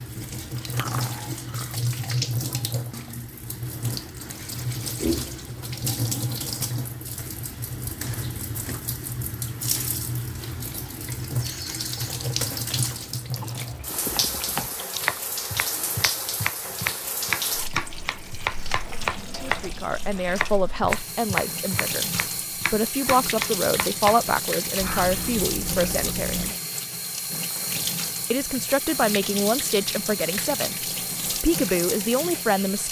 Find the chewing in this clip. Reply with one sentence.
You can hear the chewing from 0.6 to 1.8 s, from 13.3 to 15.2 s and from 24.8 to 26.6 s.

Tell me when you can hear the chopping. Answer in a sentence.
You can hear the chopping from 13.9 to 24.2 s.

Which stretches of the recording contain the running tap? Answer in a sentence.
The running tap can be heard from 0.0 to 32.8 s.